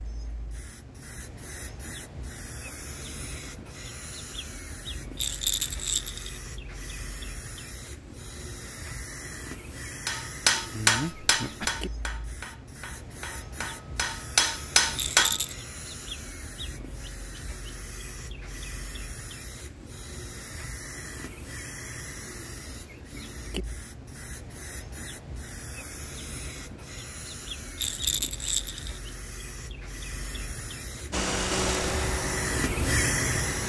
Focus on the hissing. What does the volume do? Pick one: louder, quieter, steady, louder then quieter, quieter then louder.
louder.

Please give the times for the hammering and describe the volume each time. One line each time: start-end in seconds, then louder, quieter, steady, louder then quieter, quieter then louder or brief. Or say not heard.
10.1-15.3 quieter then louder.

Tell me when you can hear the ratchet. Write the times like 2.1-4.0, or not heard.
not heard.